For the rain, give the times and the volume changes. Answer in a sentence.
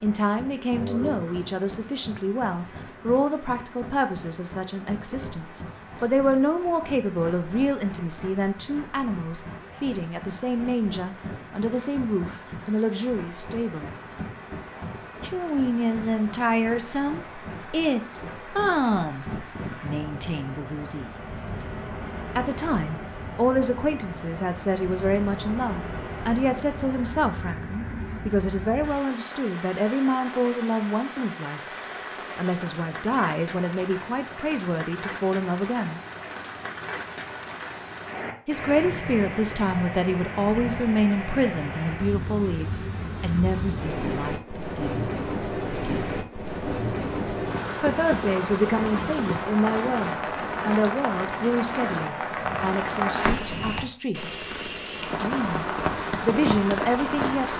The rain can be heard from 0.0 to 57.5 s, getting louder.